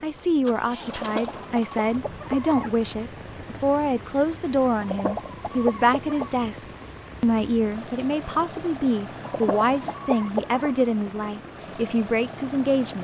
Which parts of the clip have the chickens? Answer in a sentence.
The chickens can be heard from 0.9 to 2.8 s, from 4.8 to 6.3 s and from 9.2 to 10.8 s.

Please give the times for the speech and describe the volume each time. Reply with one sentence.
The speech can be heard from 0.0 to 12.9 s, at a steady volume.